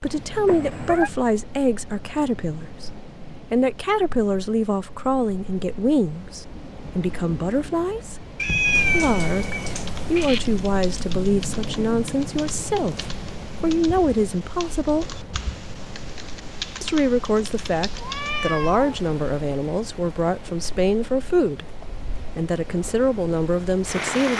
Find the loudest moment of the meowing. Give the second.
9 s.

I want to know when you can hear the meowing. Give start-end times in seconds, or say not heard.
0.5-1.1, 8.3-10.4, 17.9-18.9.